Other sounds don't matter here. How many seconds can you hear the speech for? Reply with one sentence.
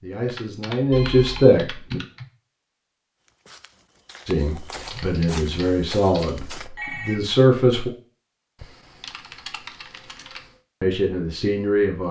You can hear the speech for 7 seconds altogether.